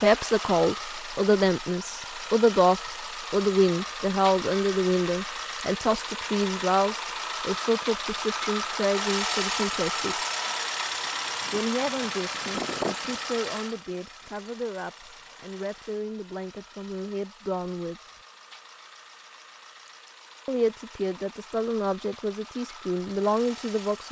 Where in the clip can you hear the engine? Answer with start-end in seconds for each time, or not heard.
0.0-24.0.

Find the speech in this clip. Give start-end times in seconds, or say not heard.
0.0-10.2, 11.5-18.2, 20.4-24.0.